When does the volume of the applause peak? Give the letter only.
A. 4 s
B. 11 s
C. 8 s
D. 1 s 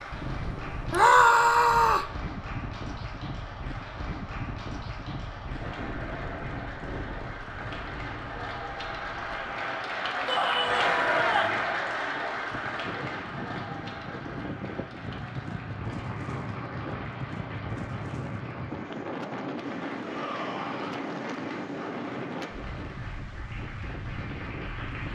B.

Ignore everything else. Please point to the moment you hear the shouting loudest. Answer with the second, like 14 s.
1 s.